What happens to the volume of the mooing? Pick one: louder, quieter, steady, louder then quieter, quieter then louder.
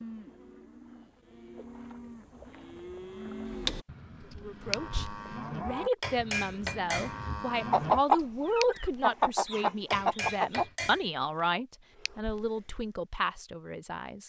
louder.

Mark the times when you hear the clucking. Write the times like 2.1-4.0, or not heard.
7.7-10.7.